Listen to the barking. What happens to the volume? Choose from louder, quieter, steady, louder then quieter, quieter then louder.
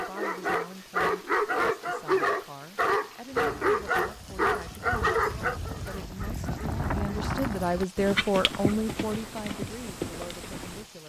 quieter.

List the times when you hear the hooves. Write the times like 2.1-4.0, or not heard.
3.3-10.8.